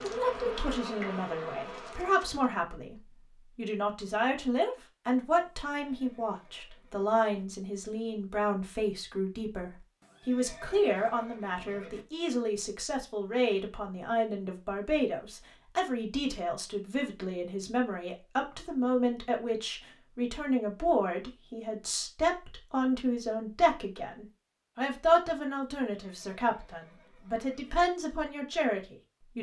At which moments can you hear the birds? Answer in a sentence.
The birds can't be heard in this clip.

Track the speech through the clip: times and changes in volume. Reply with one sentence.
You can hear the speech from 0.0 to 29.3 s, at a steady volume.